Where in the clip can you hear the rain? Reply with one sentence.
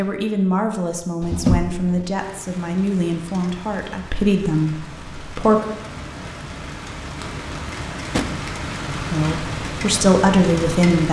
You can hear the rain from 2.1 to 11.0 s.